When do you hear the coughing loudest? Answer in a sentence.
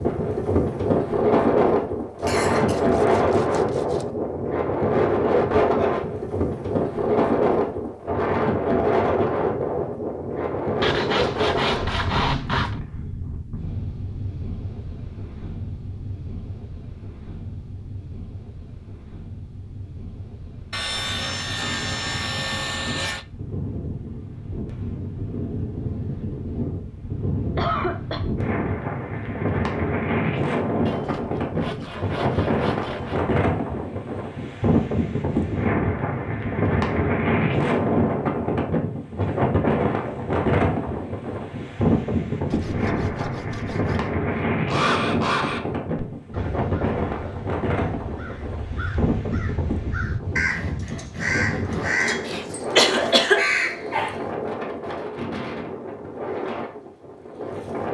The loudest moment of the coughing is at 53 seconds.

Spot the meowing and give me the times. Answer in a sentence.
The meowing can't be heard in this clip.